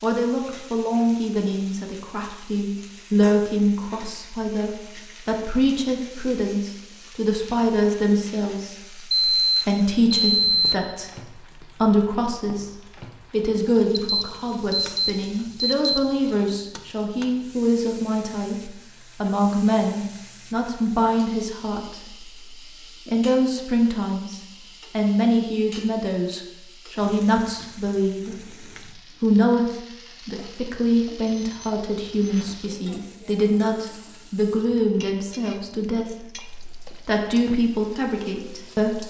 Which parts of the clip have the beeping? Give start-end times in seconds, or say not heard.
9.1-10.8, 13.9-16.5, 31.2-32.5.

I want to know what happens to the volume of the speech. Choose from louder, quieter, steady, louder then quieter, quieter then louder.
steady.